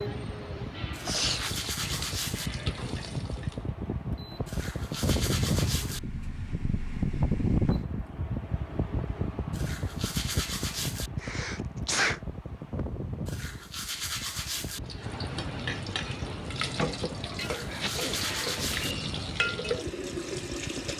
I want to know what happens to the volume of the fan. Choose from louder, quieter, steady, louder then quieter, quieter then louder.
louder then quieter.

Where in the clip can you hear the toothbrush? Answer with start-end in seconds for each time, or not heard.
0.9-2.5, 4.5-6.0, 9.5-11.1, 13.2-14.8, 17.4-18.9.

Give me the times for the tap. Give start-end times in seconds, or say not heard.
0.0-3.7, 14.8-20.9.